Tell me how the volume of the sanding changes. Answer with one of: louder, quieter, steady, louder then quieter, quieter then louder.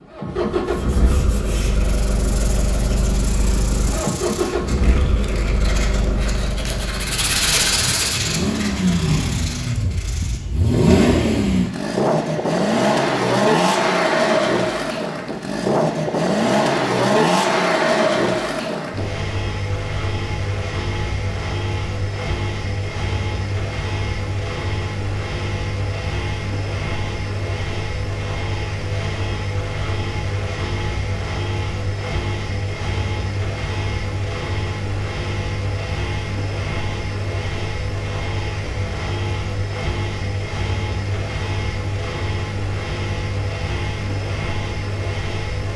louder then quieter.